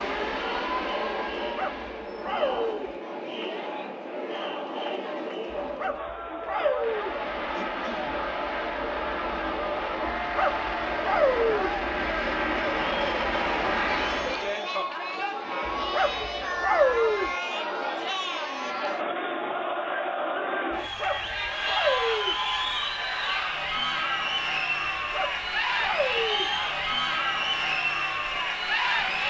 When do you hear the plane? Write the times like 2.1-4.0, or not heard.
0.0-2.2, 6.7-14.6.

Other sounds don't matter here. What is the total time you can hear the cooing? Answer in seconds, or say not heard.
not heard.